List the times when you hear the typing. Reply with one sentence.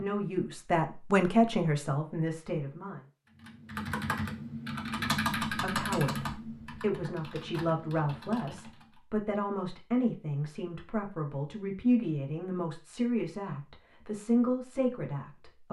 You can hear the typing from 3.2 to 9.0 s.